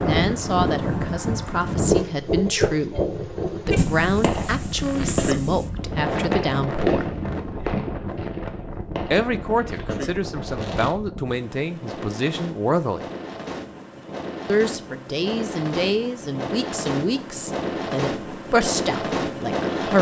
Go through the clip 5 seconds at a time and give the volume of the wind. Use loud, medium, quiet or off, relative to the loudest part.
loud, medium, medium, loud.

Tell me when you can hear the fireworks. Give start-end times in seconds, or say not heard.
4.0-10.9.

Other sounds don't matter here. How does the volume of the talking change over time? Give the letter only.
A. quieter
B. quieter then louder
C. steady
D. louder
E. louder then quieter
C.